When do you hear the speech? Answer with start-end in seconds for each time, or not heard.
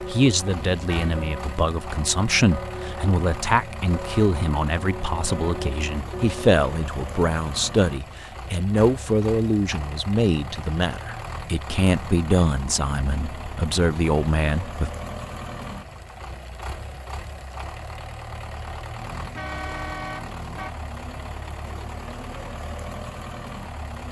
0.1-14.9.